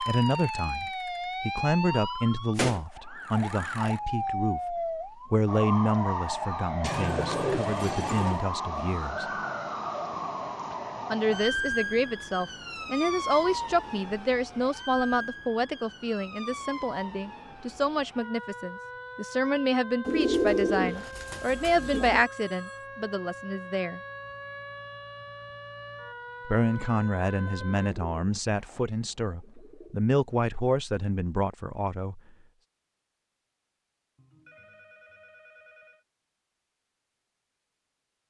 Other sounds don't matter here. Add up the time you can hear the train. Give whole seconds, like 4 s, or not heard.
not heard.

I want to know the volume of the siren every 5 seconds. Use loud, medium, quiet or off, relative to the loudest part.
loud, loud, loud, medium, medium, medium, off, off.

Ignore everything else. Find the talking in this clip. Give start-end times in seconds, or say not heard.
0.0-9.2, 11.1-24.0, 26.4-32.2.